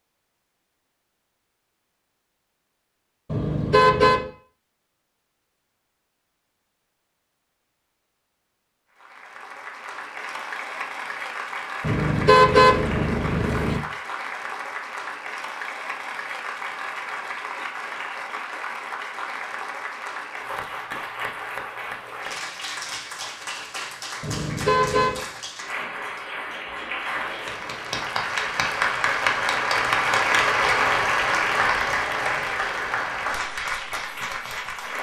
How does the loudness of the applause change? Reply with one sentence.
The volume of the applause goes up.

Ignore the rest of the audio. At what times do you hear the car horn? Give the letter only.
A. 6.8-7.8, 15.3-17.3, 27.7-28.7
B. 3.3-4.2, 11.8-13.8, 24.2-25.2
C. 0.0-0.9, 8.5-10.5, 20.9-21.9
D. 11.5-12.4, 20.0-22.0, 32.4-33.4
B.